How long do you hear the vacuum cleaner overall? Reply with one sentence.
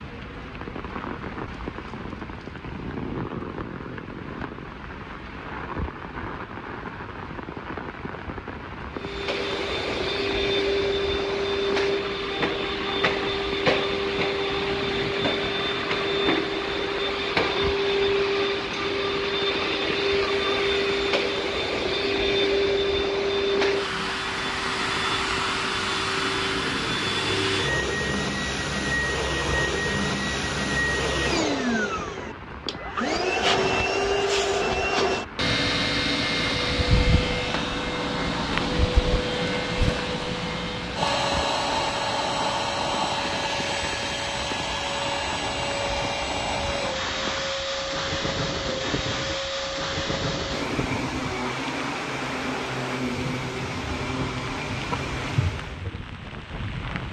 You can hear the vacuum cleaner for 47 seconds altogether.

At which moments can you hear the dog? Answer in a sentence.
The dog can't be heard in this clip.